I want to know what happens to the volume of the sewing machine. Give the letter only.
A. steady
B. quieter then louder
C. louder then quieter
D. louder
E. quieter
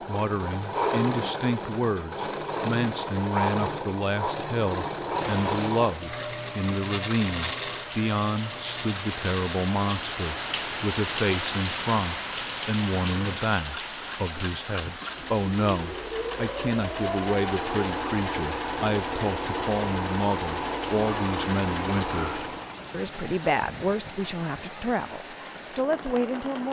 B.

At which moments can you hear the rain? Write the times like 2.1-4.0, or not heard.
5.1-26.6.